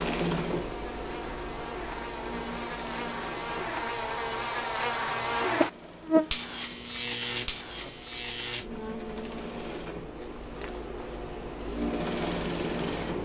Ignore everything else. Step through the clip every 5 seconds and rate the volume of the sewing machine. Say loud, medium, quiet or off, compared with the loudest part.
loud, medium, loud.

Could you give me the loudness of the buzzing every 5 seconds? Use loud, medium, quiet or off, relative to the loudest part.
medium, loud, off.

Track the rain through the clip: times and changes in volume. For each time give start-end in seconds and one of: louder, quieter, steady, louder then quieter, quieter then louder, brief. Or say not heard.
not heard.